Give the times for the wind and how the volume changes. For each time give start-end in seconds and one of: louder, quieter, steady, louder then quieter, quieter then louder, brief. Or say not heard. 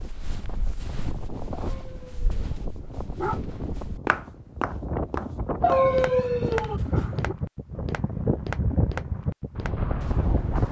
0.0-10.6 louder.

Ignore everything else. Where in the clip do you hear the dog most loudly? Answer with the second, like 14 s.
6 s.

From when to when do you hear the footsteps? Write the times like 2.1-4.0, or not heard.
0.0-10.6.